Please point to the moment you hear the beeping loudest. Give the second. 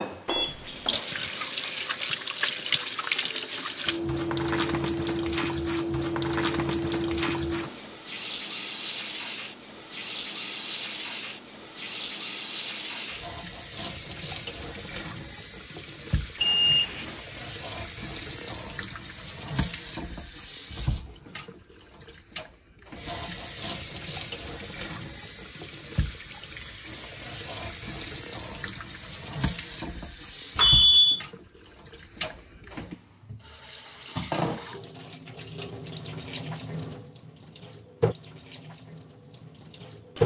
31 s.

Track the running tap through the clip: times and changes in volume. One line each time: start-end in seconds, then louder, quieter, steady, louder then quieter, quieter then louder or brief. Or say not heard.
0.0-40.2 quieter.